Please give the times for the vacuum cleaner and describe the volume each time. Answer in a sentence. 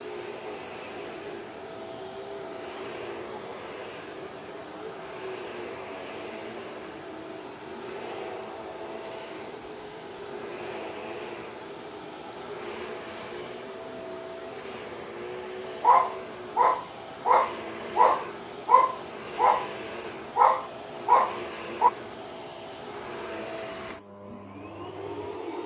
The vacuum cleaner can be heard from 0.0 to 25.6 s, at a steady volume.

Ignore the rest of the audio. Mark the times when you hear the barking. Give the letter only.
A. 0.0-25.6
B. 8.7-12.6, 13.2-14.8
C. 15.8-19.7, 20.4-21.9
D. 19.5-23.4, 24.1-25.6
C.